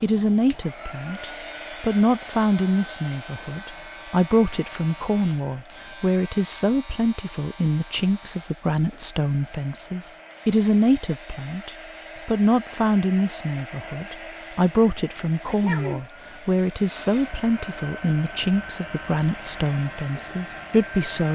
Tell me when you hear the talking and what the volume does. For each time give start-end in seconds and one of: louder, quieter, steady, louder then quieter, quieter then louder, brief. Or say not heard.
0.0-21.2 steady.